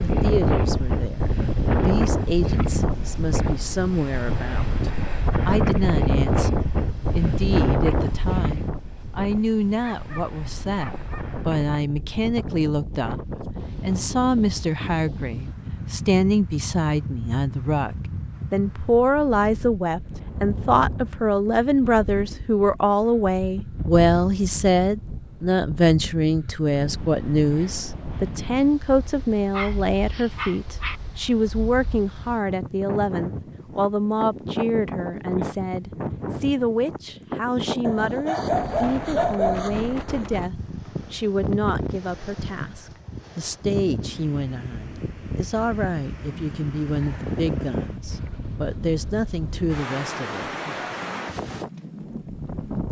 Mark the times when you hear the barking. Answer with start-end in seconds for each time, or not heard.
9.8-11.4, 29.5-31.0, 37.8-40.2.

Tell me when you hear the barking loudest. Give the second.
39 s.